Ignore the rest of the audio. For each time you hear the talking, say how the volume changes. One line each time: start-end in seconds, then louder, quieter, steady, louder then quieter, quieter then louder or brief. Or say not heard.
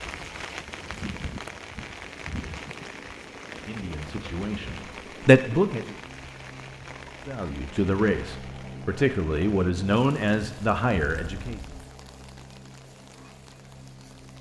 3.5-6.0 brief
7.2-11.6 steady.